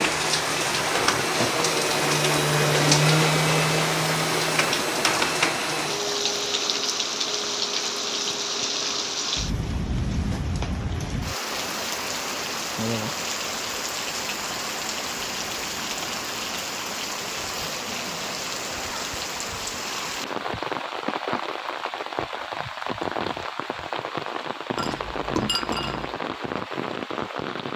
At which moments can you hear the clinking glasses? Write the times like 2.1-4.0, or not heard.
24.8-26.1.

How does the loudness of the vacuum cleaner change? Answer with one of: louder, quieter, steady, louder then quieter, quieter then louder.
louder then quieter.